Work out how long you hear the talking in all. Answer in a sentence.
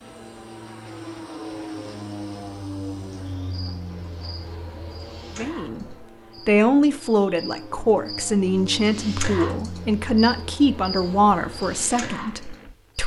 The talking can be heard for 8 seconds in total.